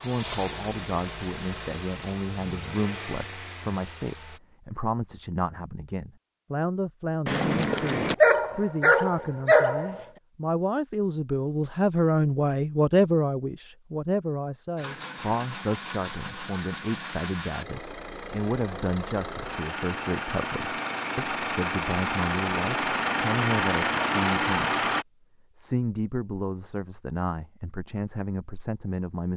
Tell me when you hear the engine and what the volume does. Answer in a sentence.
You can hear the engine from 0.0 to 4.4 s, getting quieter; and from 14.8 to 25.1 s, getting louder.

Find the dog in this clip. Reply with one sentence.
You can hear the dog from 7.2 to 10.1 s.